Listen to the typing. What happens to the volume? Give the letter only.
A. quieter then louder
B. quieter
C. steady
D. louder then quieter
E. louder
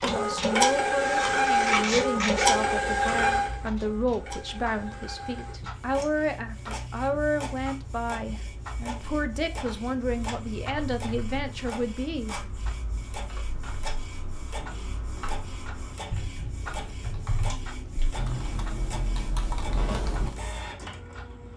E.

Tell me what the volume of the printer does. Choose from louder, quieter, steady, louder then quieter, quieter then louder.
quieter.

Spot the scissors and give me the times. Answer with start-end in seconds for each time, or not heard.
0.9-2.5.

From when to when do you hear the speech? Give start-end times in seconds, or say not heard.
0.0-12.4.